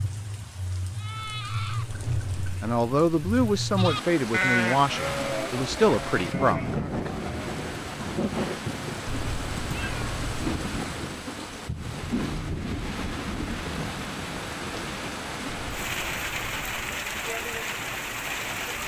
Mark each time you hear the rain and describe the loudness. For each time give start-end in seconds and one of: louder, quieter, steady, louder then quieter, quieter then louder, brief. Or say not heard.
0.0-18.8 steady.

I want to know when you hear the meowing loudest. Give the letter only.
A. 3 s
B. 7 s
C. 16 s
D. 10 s
D.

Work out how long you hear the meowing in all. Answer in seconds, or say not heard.
4 s.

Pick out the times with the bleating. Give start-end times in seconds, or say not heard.
0.9-7.8.